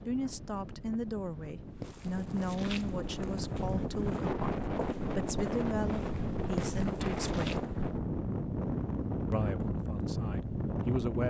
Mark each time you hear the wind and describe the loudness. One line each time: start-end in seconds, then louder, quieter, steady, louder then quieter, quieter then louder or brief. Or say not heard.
0.0-11.2 louder.